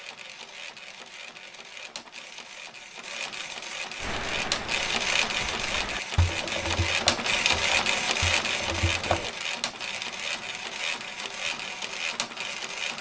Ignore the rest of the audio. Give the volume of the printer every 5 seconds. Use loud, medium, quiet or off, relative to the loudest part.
medium, loud, medium.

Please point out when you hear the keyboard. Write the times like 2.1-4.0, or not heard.
4.0-9.3.